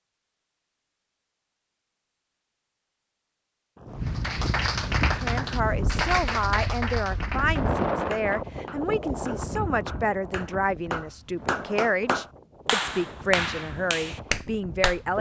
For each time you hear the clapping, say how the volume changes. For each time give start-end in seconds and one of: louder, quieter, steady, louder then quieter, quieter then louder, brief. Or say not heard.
4.0-15.0 quieter then louder.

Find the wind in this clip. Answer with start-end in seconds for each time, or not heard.
3.8-15.1.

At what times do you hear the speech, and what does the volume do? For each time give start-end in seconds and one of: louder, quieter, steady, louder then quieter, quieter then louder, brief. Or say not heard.
5.2-15.1 steady.